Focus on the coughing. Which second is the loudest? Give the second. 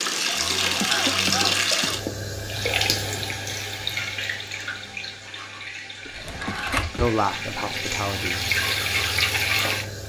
1 s.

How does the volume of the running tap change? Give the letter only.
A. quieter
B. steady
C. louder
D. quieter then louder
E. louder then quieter
D.